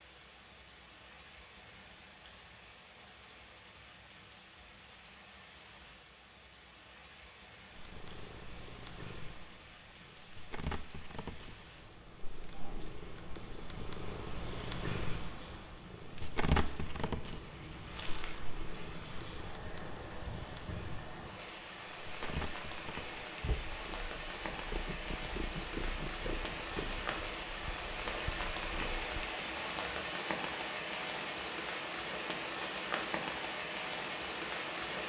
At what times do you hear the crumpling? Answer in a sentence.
The crumpling can be heard from 17.9 to 18.4 s.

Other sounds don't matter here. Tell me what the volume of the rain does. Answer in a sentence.
The volume of the rain goes up.